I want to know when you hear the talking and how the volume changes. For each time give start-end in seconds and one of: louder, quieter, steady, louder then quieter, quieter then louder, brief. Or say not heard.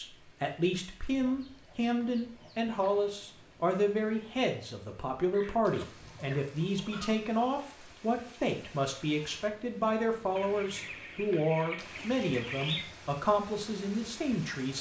0.0-14.7 steady.